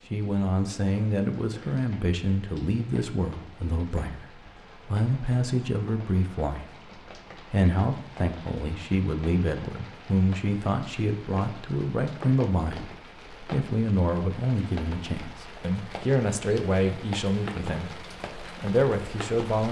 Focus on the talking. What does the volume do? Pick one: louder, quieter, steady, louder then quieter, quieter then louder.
steady.